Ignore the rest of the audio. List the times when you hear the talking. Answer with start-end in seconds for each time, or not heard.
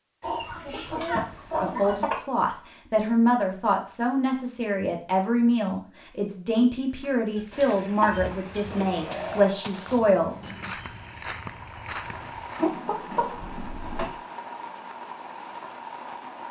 1.6-10.3.